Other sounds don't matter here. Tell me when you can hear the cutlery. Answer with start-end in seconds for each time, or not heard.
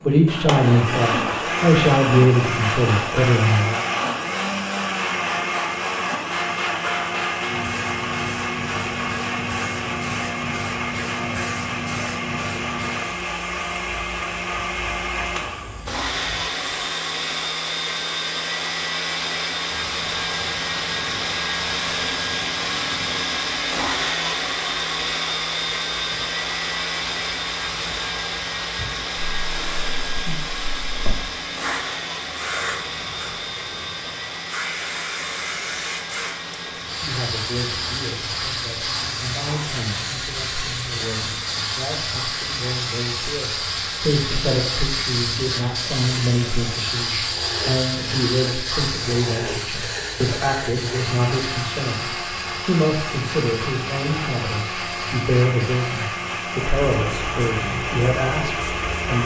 not heard.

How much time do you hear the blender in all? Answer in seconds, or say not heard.
59 s.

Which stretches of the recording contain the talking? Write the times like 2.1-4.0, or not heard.
0.0-3.9, 37.0-59.2.